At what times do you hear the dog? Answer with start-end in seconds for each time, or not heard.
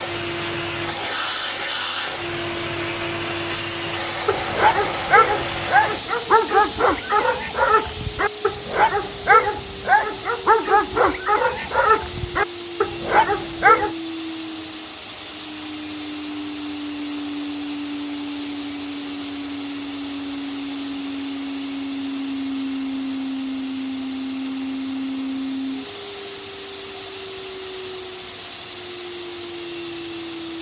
4.2-13.9.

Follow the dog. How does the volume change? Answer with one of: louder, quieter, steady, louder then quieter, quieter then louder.
steady.